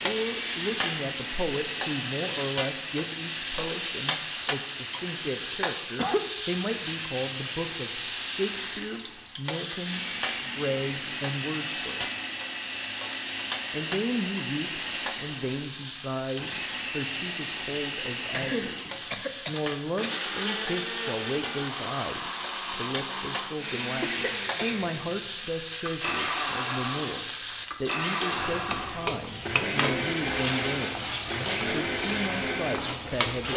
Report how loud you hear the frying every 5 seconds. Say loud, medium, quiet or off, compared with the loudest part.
loud, loud, loud, medium, medium, loud, loud.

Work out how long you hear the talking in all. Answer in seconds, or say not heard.
32 s.